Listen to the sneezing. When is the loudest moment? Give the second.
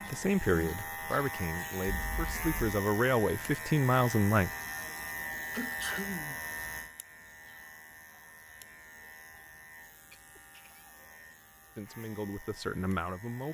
6 s.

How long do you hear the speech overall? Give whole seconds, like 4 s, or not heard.
6 s.